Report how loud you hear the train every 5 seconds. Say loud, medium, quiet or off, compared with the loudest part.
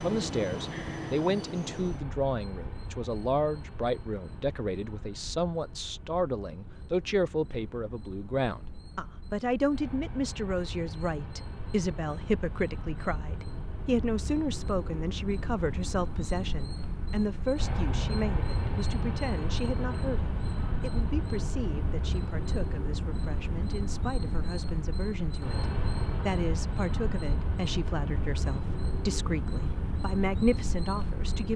loud, quiet, medium, loud, loud, loud, loud.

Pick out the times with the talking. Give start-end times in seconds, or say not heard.
0.0-31.5.